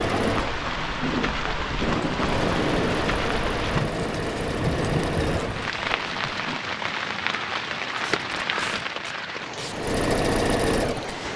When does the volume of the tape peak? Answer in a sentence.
The volume of the tape peaks at 2 seconds.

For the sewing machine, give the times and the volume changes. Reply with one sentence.
You can hear the sewing machine from 0.0 to 6.6 s, at a steady volume; and briefly from 9.7 to 11.3 s.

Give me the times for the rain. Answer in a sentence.
You can hear the rain from 0.0 to 11.3 s.